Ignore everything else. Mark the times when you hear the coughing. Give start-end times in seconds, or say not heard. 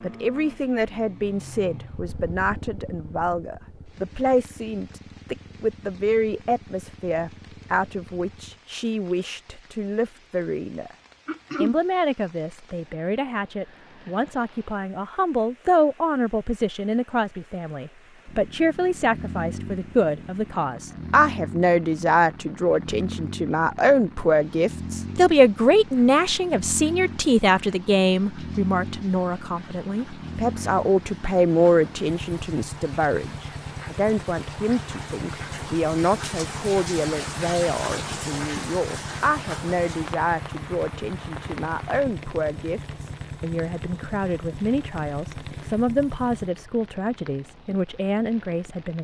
11.2-11.8.